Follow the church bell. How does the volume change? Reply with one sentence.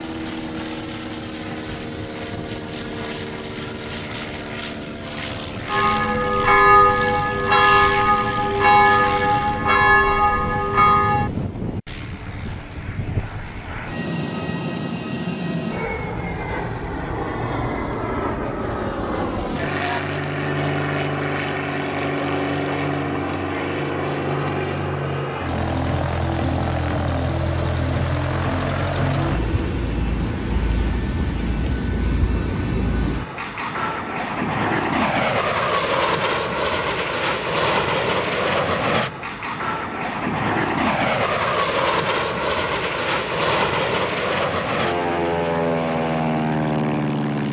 The loudness of the church bell stays about the same.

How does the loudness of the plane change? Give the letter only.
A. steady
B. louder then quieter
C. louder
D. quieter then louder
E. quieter
C.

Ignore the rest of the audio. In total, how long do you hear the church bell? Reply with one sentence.
The church bell can be heard for 6 seconds in total.